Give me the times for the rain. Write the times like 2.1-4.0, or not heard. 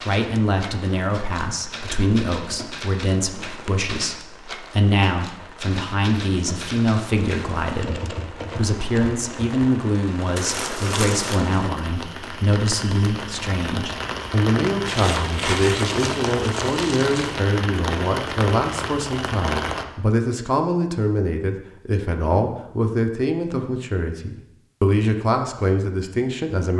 0.2-19.9.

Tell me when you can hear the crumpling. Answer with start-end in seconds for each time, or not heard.
10.3-11.4, 14.8-17.4.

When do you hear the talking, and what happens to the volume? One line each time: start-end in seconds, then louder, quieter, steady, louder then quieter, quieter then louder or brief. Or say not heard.
0.0-26.7 steady.